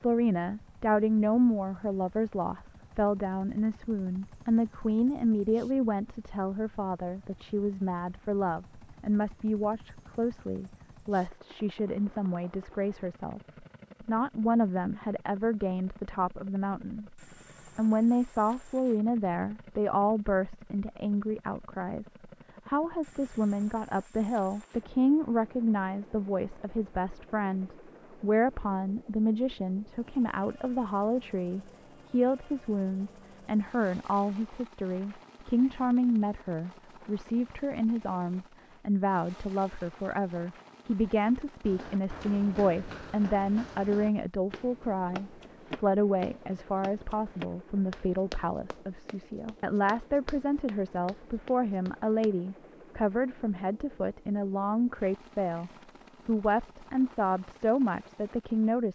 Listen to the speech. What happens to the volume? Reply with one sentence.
The loudness of the speech stays about the same.